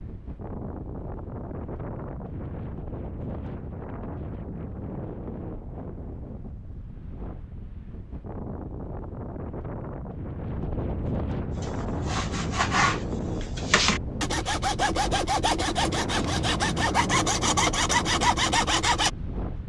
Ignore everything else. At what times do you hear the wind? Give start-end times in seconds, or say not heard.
0.0-19.6.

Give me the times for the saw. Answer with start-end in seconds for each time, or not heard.
11.6-19.1.